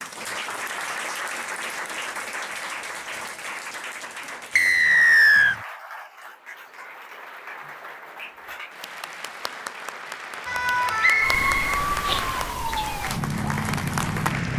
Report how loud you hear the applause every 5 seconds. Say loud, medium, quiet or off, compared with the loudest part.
loud, medium, loud.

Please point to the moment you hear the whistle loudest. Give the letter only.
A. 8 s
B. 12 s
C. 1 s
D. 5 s
D.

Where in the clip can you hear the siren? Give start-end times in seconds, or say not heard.
10.4-14.5.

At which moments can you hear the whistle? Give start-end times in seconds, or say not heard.
4.5-5.5, 11.0-11.8.